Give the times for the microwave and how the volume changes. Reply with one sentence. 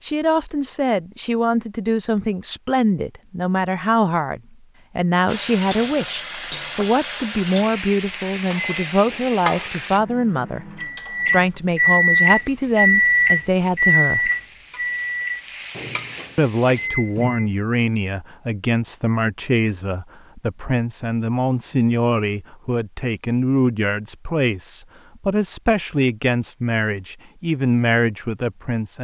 The microwave can be heard from 8.3 to 17.6 s, getting louder then quieter.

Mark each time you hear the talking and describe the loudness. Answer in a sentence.
You can hear the talking from 0.0 to 14.3 s, at a steady volume; and from 16.4 to 29.0 s, at a steady volume.